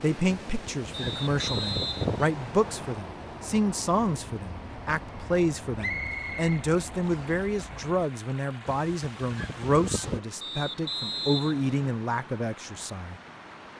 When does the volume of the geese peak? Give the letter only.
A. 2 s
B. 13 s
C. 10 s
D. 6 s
A.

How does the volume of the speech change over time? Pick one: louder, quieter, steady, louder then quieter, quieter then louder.
steady.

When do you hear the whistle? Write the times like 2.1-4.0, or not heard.
0.9-3.0, 5.8-7.4, 10.4-12.0.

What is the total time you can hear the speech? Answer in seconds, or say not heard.
13 s.